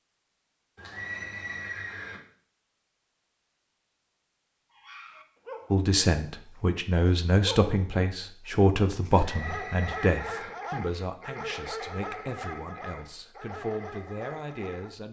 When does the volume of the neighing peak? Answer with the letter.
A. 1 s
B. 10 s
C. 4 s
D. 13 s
A.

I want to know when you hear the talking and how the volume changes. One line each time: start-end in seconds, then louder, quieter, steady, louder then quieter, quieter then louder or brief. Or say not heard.
5.7-15.0 quieter.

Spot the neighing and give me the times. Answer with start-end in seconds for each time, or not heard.
0.8-2.2, 9.1-10.5.